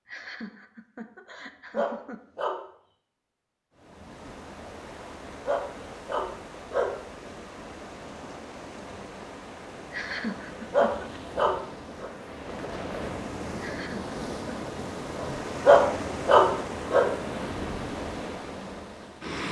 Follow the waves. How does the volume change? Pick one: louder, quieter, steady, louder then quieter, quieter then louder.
louder.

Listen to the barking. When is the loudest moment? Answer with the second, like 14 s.
16 s.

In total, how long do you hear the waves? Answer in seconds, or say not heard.
16 s.